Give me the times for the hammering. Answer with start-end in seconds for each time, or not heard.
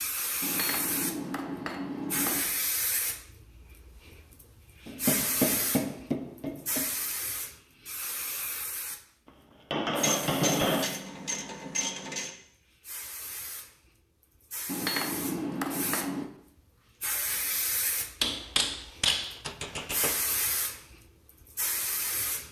0.4-2.5, 4.8-6.8, 9.7-10.8, 14.7-16.3, 18.2-20.1.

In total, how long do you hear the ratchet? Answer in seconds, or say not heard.
2 s.